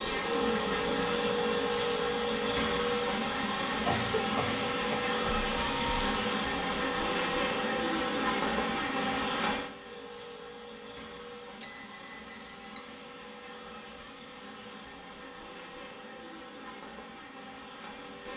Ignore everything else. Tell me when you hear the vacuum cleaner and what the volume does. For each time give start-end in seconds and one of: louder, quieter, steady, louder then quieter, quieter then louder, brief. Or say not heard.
0.0-18.3 quieter.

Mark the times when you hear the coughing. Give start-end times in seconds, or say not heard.
3.9-5.2.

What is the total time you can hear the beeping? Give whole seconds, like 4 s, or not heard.
2 s.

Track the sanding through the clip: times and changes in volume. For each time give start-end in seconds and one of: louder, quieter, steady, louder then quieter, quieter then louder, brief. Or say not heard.
not heard.